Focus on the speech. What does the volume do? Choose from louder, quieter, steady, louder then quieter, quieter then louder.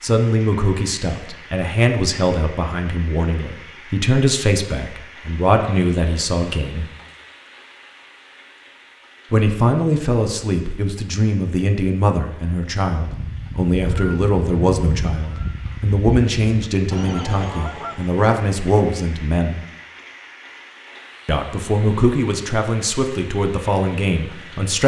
steady.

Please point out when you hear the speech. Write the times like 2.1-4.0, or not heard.
0.0-6.8, 9.3-19.6, 21.2-24.8.